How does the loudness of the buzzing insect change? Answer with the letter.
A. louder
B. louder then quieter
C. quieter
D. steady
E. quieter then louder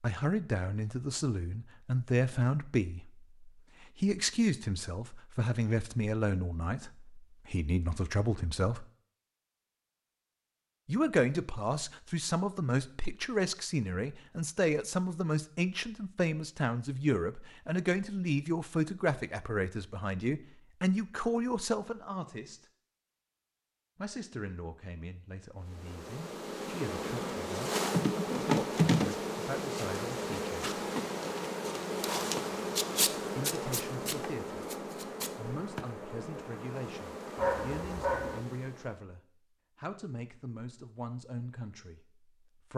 C.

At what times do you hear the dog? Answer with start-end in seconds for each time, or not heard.
37.4-38.5.